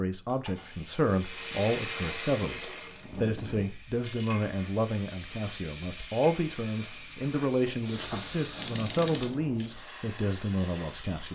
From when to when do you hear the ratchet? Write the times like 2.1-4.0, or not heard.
1.1-9.7.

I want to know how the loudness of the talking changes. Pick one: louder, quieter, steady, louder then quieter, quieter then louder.
steady.